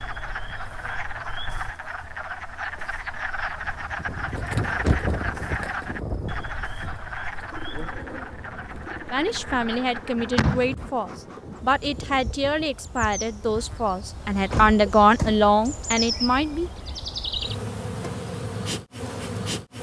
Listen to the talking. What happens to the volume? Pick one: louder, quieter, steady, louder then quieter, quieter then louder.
louder.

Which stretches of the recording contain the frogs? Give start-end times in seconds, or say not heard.
0.0-10.7.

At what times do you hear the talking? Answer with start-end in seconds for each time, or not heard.
9.1-16.7.